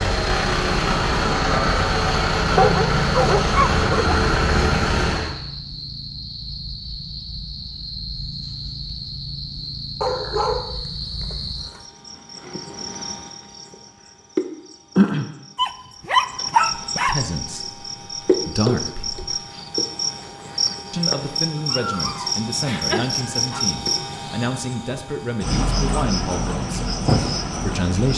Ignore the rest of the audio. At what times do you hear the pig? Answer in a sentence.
You can't hear the pig here.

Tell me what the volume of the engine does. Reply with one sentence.
The loudness of the engine stays about the same.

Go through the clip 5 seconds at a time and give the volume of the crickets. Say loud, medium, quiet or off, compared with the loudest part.
medium, medium, medium, loud, loud, loud.